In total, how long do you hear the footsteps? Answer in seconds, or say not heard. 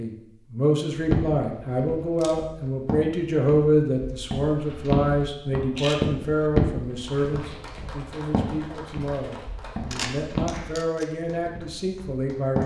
12 s.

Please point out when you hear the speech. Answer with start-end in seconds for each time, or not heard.
0.0-12.6.